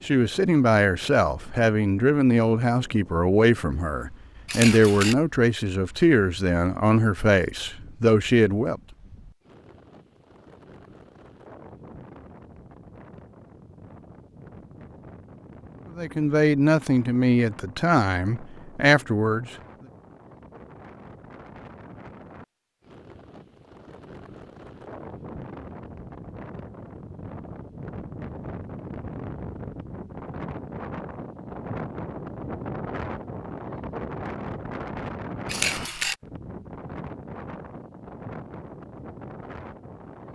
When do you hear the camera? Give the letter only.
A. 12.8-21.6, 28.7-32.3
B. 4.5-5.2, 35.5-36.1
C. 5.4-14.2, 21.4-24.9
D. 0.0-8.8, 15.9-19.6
B.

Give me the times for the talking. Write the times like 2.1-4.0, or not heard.
0.0-8.8, 15.9-19.6.